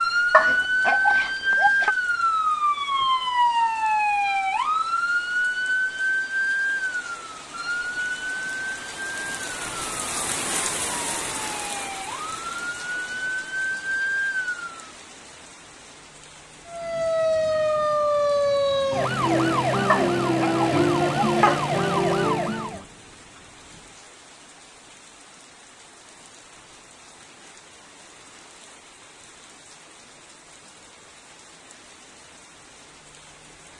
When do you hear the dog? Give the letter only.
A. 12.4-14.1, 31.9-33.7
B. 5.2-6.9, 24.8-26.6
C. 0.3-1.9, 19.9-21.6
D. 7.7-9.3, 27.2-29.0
C.